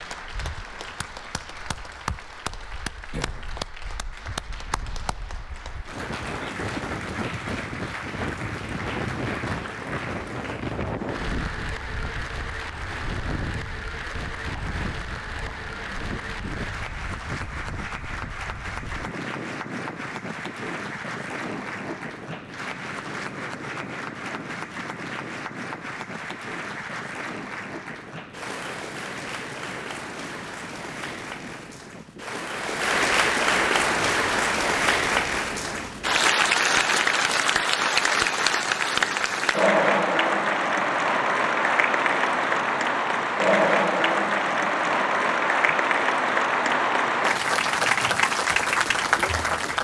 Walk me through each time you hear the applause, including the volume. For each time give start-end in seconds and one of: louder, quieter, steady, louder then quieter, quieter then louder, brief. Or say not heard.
0.0-49.7 louder.